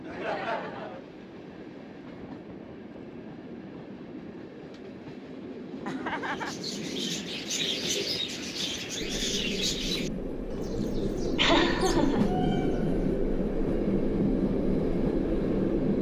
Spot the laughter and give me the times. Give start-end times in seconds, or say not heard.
0.0-1.0, 5.8-6.5, 11.3-12.3.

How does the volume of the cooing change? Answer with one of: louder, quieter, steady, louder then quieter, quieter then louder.
quieter.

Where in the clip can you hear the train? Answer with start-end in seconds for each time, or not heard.
0.0-15.9.